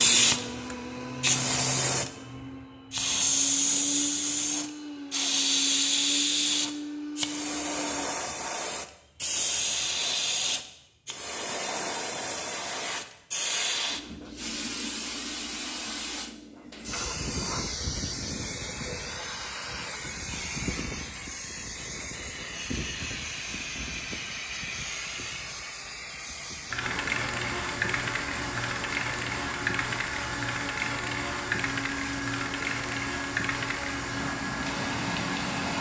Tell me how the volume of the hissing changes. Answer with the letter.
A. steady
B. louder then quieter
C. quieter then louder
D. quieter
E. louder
D.